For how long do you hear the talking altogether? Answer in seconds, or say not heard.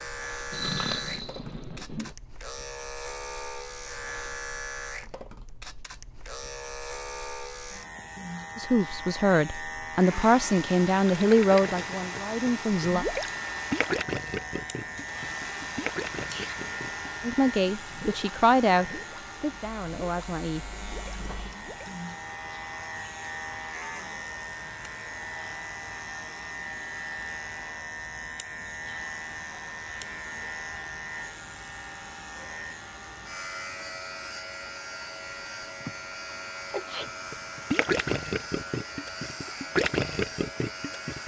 8 s.